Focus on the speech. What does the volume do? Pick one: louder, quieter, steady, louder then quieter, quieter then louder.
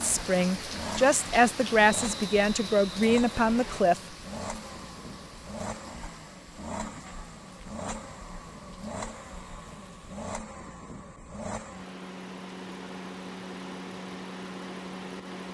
steady.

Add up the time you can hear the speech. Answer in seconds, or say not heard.
4 s.